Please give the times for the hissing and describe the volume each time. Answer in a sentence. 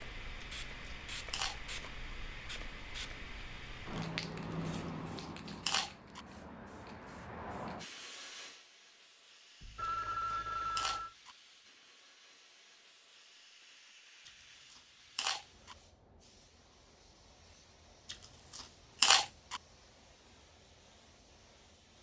You can hear the hissing from 0.0 to 21.9 s, getting quieter.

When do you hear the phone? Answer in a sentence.
The phone can be heard from 9.6 to 11.2 s.